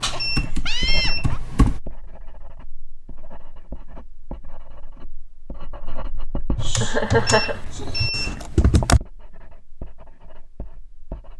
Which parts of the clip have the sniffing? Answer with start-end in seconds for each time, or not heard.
not heard.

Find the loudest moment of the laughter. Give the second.
7 s.